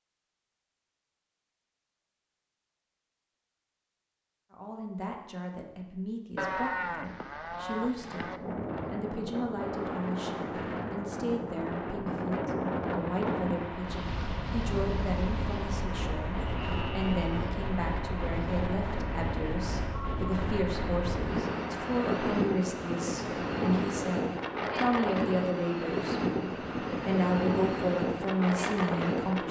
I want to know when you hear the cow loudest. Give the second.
7 s.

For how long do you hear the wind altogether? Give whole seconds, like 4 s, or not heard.
21 s.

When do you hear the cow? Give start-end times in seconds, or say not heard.
6.3-8.4, 16.4-17.4.